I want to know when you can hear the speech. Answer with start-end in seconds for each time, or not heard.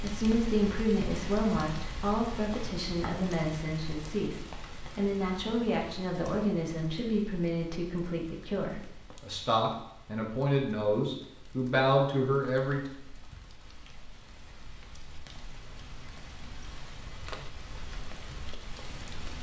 0.0-12.8.